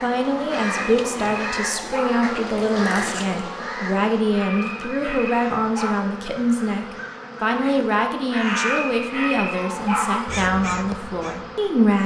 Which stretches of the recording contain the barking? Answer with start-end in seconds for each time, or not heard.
0.6-2.3, 4.3-6.0, 8.4-10.2.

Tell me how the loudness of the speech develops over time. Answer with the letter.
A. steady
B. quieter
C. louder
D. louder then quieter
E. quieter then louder
A.